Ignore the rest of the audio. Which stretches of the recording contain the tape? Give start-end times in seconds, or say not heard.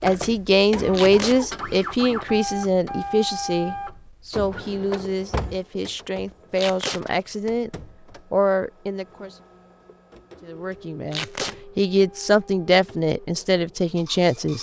0.9-1.4, 6.5-7.0, 11.1-11.6.